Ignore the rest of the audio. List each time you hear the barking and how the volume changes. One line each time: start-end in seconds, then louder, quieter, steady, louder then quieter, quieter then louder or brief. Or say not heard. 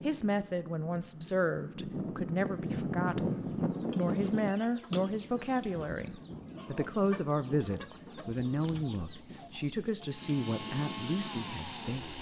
not heard.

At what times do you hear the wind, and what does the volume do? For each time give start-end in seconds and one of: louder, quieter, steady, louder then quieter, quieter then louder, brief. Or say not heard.
0.0-12.1 louder then quieter.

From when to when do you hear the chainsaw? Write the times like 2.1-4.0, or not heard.
10.0-12.1.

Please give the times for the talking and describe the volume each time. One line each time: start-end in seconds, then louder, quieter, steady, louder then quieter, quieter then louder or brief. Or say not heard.
0.0-12.1 steady.